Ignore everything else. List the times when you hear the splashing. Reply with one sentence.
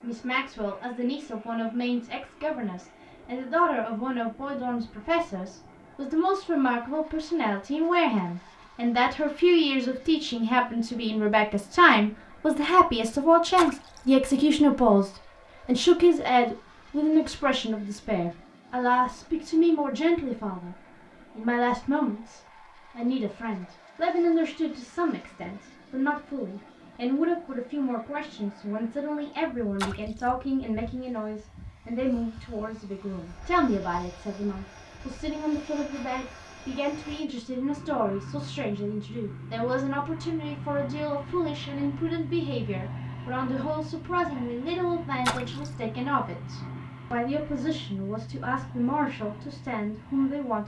The splashing can be heard from 13.6 to 14.0 s, from 29.8 to 30.2 s and from 45.2 to 45.7 s.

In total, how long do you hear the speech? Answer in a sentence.
The speech can be heard for 50 seconds in total.